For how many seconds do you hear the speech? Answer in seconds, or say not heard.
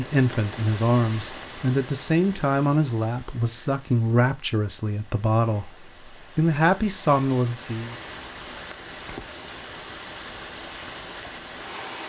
8 s.